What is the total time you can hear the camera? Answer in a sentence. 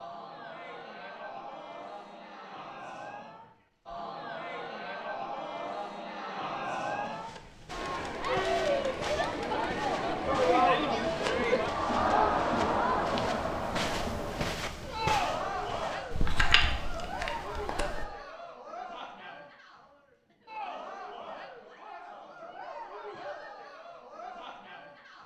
You can hear the camera for 2 seconds altogether.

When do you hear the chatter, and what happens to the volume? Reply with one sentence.
You can hear the chatter from 0.0 to 25.2 s, getting louder then quieter.